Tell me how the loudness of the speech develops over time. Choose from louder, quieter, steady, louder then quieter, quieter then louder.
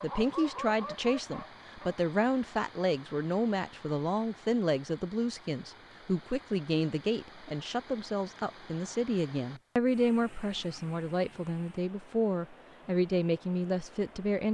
steady.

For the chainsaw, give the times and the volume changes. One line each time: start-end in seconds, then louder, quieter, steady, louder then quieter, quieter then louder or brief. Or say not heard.
not heard.